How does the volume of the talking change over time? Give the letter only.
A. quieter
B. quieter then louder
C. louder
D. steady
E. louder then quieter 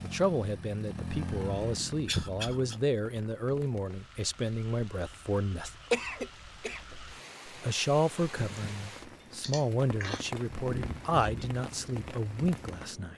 D.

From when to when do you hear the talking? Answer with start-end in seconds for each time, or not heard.
0.0-5.8, 7.5-13.1.